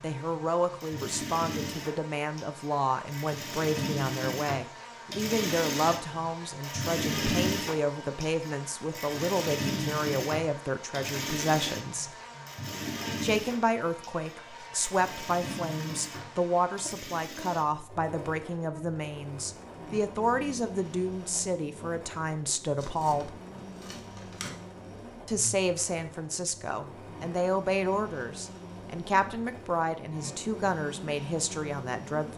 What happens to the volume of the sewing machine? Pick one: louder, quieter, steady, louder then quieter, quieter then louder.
quieter.